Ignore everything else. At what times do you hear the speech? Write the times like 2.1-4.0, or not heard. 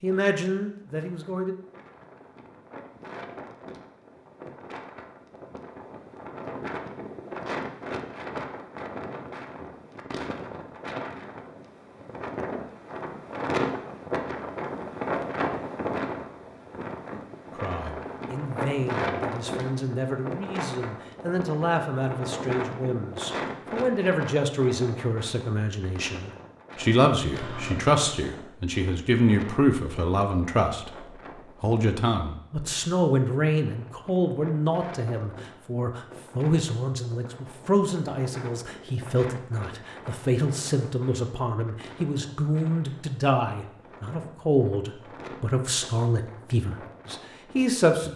0.0-1.6, 17.6-48.1.